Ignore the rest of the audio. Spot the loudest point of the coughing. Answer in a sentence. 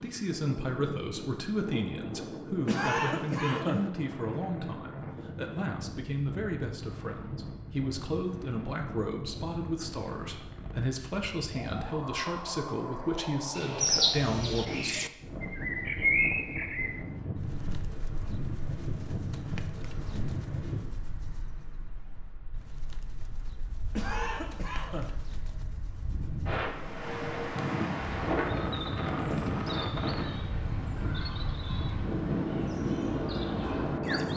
The loudest moment of the coughing is at 3 seconds.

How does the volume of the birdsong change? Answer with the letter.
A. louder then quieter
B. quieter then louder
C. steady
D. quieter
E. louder
B.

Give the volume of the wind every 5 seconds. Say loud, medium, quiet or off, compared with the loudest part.
medium, medium, medium, medium, medium, loud, loud.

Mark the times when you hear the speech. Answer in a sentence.
You can hear the speech from 0.0 to 15.0 s.